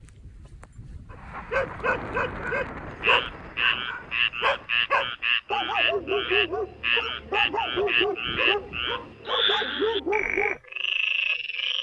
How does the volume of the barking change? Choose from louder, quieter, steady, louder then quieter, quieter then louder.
steady.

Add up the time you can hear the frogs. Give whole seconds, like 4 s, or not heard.
9 s.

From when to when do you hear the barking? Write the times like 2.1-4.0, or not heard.
1.1-10.6.